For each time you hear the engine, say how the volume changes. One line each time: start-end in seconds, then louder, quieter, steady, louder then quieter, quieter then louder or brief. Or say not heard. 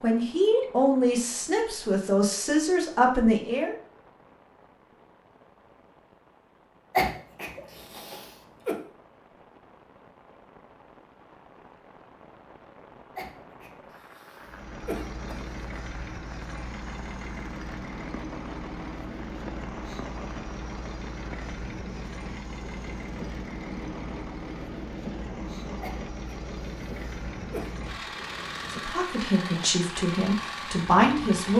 14.4-31.5 steady.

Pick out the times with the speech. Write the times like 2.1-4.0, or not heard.
0.0-3.8, 28.9-31.5.